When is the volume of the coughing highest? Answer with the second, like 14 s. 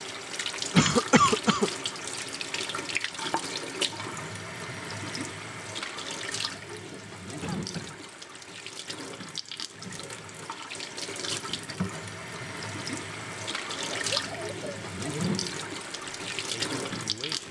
1 s.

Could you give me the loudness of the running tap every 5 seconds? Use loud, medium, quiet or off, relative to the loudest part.
loud, medium, loud, loud.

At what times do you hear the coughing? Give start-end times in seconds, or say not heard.
0.7-1.7, 7.4-8.0, 13.9-14.8.